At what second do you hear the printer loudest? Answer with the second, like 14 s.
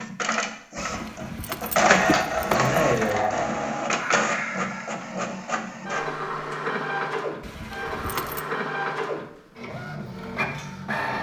2 s.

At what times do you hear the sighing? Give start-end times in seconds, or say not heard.
2.5-5.1.